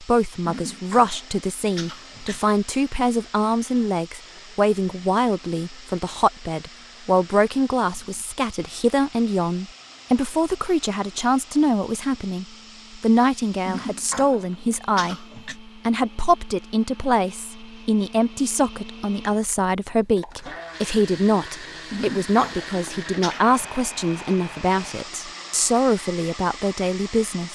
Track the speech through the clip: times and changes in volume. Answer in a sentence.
You can hear the speech from 0.0 to 27.4 s, at a steady volume.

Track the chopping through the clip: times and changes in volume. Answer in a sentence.
The chopping can't be heard in this clip.